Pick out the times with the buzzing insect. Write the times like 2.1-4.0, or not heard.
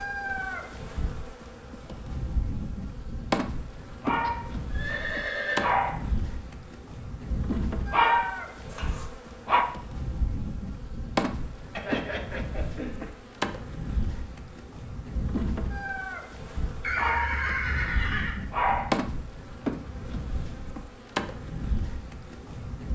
0.0-22.9.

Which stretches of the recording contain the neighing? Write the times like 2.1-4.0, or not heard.
4.2-5.8, 11.8-13.1, 16.8-18.4.